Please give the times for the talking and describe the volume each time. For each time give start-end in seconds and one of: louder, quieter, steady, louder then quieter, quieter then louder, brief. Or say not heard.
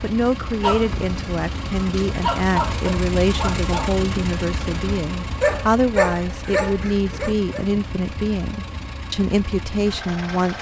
0.0-10.5 steady.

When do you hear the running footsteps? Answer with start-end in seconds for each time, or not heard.
not heard.